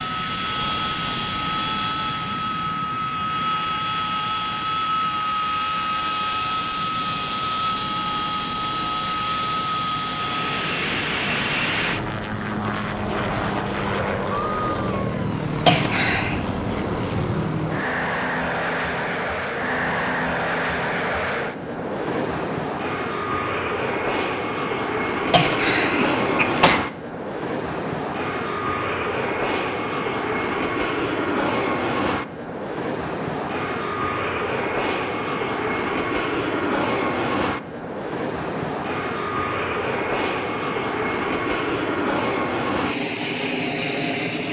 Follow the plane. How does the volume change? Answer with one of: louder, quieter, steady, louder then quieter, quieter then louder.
steady.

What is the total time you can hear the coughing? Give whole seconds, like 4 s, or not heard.
2 s.